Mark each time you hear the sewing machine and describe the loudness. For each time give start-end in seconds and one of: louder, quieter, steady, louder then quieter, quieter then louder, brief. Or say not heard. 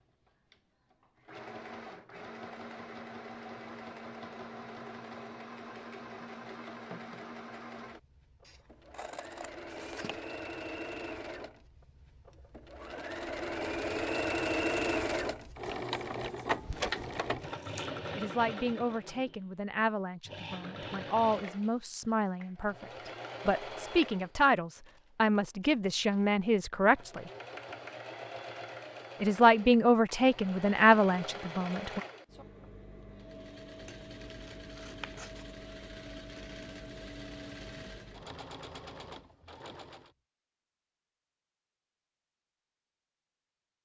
0.2-40.1 louder then quieter.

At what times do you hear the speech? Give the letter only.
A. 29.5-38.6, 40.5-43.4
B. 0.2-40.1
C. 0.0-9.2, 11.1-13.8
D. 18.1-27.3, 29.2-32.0
D.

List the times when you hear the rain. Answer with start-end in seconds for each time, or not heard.
not heard.